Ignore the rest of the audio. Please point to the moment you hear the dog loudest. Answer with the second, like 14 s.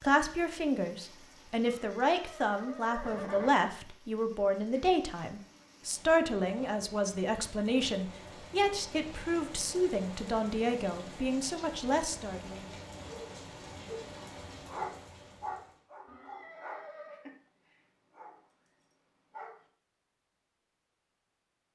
15 s.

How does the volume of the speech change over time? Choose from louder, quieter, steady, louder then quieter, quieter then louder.
steady.